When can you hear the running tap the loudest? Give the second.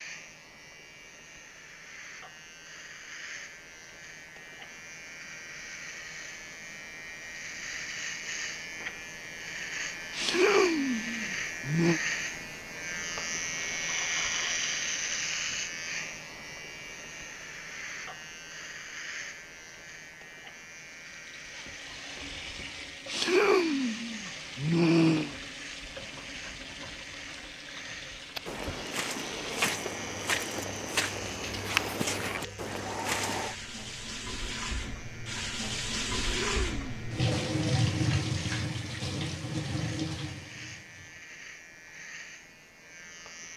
38 s.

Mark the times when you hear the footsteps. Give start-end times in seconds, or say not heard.
28.4-33.5.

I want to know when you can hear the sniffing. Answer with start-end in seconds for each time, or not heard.
10.1-12.0, 23.1-25.4, 36.3-37.0.